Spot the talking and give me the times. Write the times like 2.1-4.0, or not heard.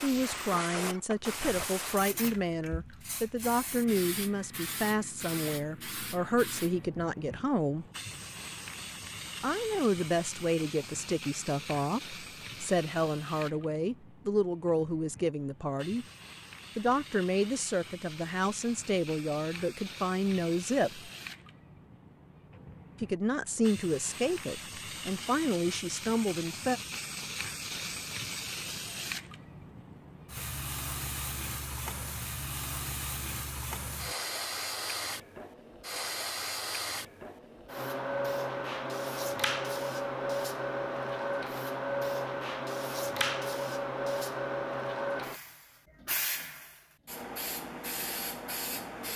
0.0-7.8, 9.4-16.1, 16.8-21.1, 23.0-26.8.